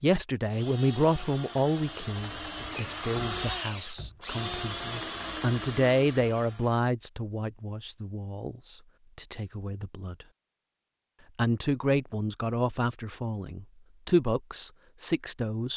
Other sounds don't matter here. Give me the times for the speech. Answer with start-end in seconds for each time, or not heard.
0.0-10.2, 11.3-15.7.